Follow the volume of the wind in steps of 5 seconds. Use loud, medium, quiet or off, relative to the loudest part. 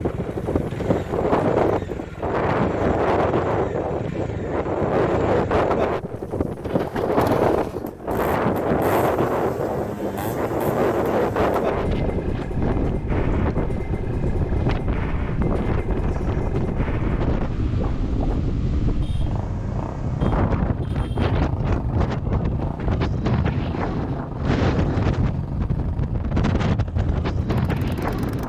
loud, loud, loud, medium, loud, loud.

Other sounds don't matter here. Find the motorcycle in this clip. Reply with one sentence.
The motorcycle can be heard from 0.0 to 28.4 s.